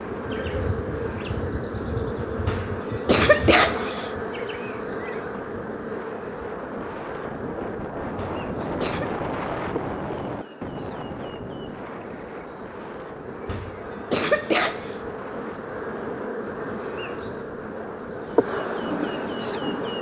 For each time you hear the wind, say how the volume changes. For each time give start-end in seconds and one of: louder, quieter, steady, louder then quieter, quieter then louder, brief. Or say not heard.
0.0-19.9 louder then quieter.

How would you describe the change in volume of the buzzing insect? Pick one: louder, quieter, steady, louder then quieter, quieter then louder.
quieter then louder.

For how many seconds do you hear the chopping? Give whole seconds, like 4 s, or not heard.
not heard.